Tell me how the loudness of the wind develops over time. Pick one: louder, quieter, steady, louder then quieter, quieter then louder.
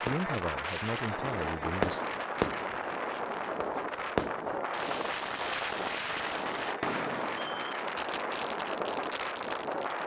steady.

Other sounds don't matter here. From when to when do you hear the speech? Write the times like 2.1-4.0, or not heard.
0.0-2.0.